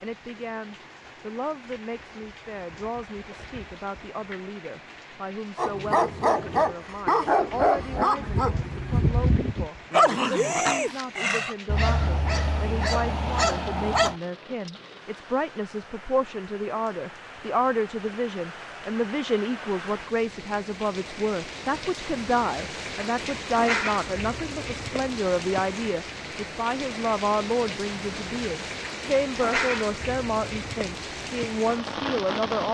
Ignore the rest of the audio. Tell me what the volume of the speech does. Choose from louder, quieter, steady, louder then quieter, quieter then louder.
louder.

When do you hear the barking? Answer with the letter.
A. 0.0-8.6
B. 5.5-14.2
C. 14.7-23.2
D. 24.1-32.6
B.